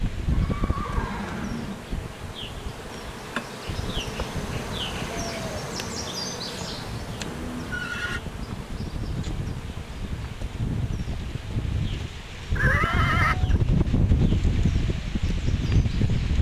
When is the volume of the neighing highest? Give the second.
13 s.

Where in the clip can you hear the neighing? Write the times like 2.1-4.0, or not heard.
0.3-1.9, 7.2-8.2, 12.6-13.6.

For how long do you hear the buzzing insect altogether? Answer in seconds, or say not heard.
16 s.